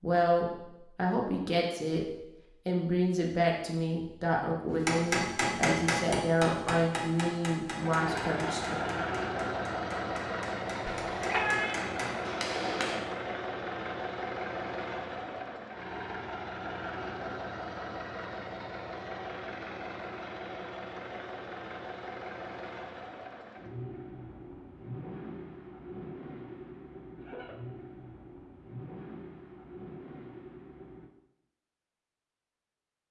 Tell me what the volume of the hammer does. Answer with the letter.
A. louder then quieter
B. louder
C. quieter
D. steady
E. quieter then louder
E.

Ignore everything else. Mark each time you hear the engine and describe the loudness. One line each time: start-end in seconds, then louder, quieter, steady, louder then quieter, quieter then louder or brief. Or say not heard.
7.8-31.1 quieter.